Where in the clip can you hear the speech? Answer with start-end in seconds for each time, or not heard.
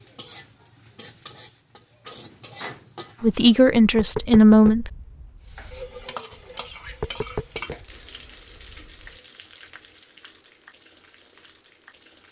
3.2-4.9.